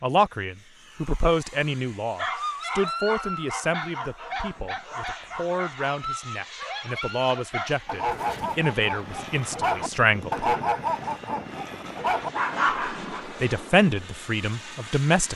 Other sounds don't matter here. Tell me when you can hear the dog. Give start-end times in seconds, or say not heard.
2.1-13.2.